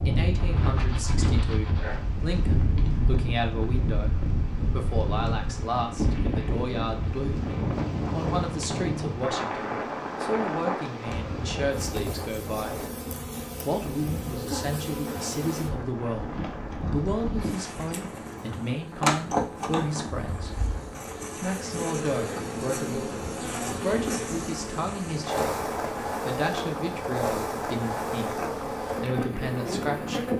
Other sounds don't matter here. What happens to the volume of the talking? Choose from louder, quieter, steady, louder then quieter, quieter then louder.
steady.